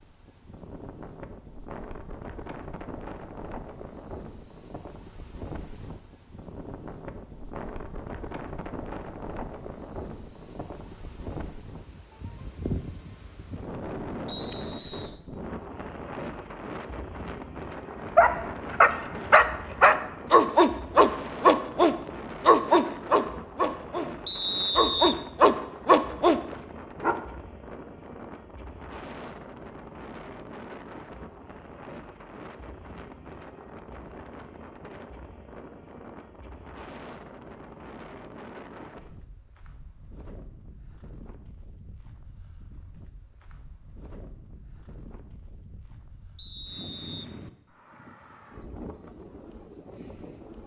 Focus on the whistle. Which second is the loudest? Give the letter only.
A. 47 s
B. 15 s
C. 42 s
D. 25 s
D.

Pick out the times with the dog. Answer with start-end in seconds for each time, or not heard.
18.1-27.2.